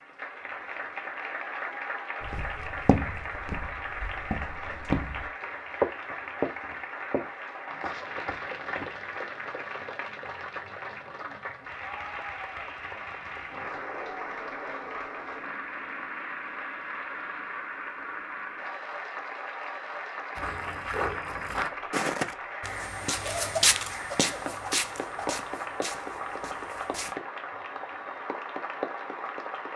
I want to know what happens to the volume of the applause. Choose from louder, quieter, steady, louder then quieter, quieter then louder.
steady.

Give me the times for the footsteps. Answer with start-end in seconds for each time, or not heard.
2.2-9.0, 20.4-27.1.